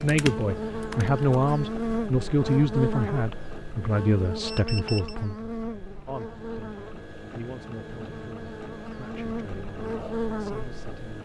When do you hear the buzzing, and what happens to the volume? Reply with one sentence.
You can hear the buzzing from 0.0 to 10.8 s, getting quieter then louder.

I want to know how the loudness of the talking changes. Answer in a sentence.
The volume of the talking goes down.